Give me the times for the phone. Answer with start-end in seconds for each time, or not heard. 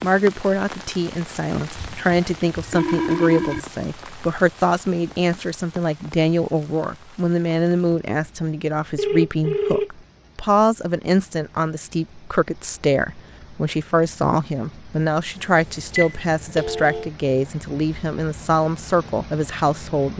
1.8-3.6, 8.9-9.9, 15.3-17.1.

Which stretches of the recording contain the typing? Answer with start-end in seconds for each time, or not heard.
not heard.